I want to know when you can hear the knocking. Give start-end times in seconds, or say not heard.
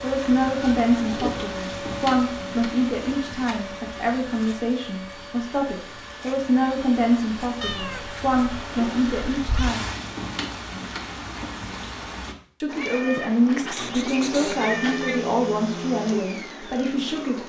not heard.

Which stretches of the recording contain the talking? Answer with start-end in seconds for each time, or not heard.
0.0-9.8, 12.6-17.4.